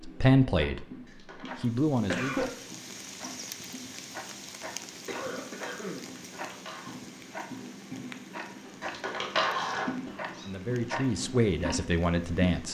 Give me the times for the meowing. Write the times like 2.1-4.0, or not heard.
1.1-1.6, 6.3-7.0, 8.8-10.5.